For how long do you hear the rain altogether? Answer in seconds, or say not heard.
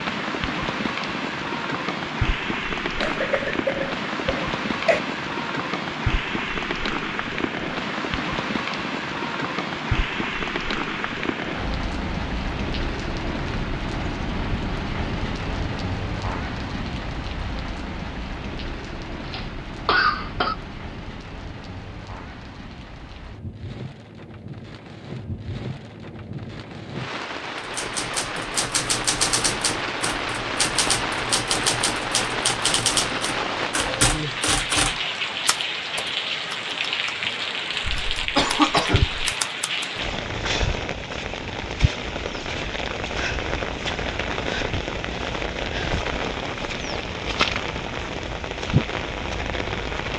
50 s.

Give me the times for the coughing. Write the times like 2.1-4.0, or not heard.
3.0-5.0, 19.2-20.6, 37.8-39.4.